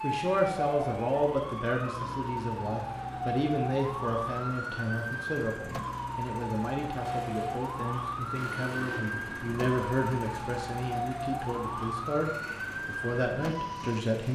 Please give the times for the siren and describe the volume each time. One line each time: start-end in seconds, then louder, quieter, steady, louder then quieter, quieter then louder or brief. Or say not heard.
0.0-14.3 steady.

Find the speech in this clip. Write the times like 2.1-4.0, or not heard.
0.0-14.3.